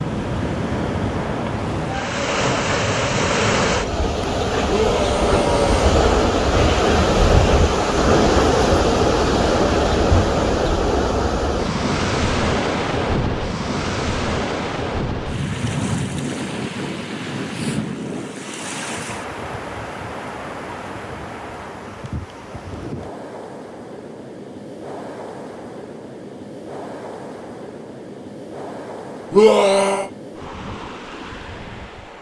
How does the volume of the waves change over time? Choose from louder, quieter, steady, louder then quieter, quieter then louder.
quieter.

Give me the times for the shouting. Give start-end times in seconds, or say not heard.
4.7-5.9, 29.3-30.1.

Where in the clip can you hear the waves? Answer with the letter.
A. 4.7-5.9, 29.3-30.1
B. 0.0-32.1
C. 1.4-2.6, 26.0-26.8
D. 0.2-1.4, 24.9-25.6
B.